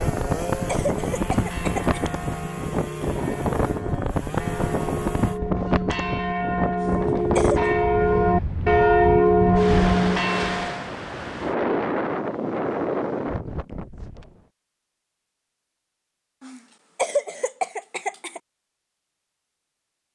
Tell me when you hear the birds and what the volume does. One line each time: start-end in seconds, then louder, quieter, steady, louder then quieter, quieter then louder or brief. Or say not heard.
not heard.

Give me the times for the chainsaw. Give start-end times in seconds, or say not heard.
0.0-5.4.